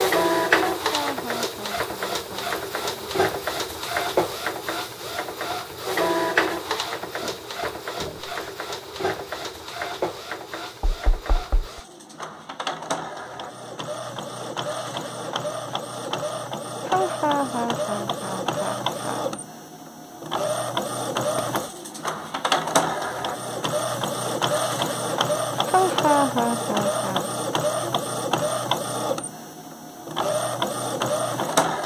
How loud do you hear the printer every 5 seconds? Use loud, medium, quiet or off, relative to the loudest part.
loud, loud, medium, medium, loud, loud, loud.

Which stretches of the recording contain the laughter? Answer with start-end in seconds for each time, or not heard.
0.8-3.0, 16.9-19.4, 25.6-27.2.